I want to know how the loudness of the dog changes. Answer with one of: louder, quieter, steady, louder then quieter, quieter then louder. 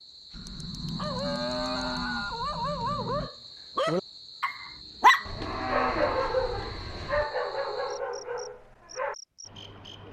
louder then quieter.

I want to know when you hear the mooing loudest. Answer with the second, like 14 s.
6 s.